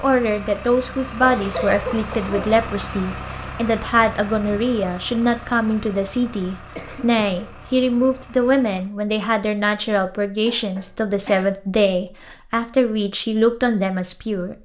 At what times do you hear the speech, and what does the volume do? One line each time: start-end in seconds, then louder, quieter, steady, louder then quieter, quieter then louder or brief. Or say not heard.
0.0-14.5 steady.